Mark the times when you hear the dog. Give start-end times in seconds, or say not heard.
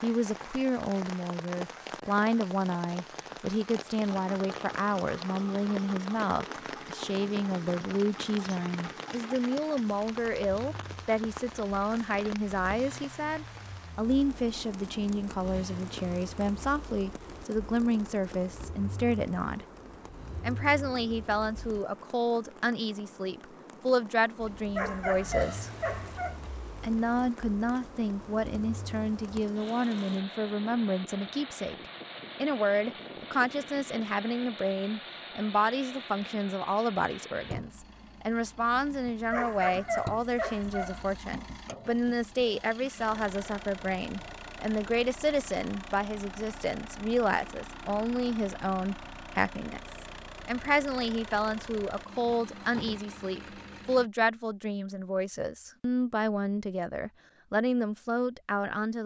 24.8-26.4, 39.3-41.2.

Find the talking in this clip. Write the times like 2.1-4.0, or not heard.
0.0-19.6, 20.4-25.7, 26.8-59.0.